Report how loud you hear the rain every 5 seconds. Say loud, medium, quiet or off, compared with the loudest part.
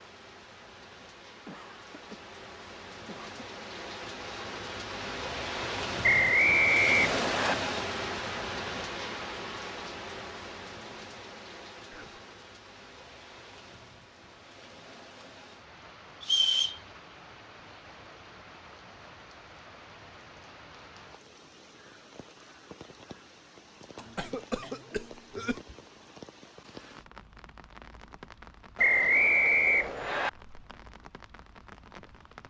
medium, loud, quiet, quiet, quiet, quiet, quiet.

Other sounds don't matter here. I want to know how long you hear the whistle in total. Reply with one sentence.
You can hear the whistle for 4 seconds altogether.